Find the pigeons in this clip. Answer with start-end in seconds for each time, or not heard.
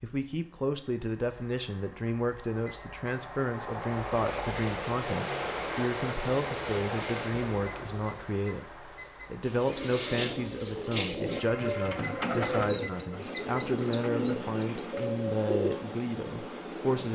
9.4-15.9.